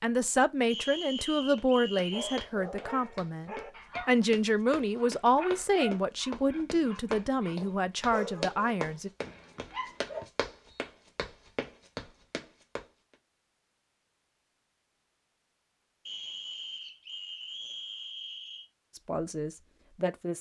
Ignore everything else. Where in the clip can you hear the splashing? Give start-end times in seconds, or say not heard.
not heard.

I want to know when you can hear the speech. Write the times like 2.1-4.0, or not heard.
0.0-9.1, 18.9-20.3.